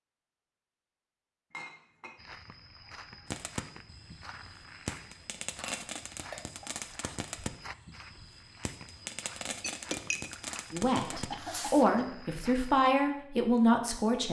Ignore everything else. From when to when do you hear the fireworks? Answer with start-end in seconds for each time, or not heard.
3.2-11.8.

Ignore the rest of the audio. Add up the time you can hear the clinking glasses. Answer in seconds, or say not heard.
3 s.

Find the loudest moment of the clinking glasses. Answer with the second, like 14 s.
10 s.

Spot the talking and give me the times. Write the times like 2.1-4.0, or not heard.
10.7-14.2.